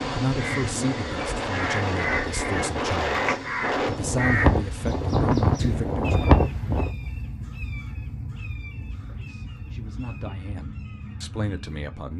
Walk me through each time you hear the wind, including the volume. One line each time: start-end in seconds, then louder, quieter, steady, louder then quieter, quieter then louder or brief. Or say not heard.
0.0-7.0 louder.